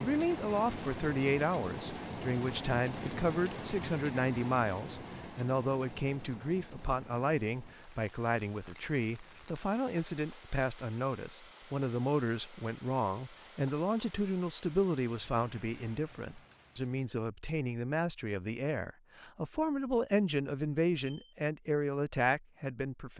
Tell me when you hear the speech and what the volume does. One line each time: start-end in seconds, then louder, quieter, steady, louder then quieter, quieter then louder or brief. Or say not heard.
0.0-23.1 steady.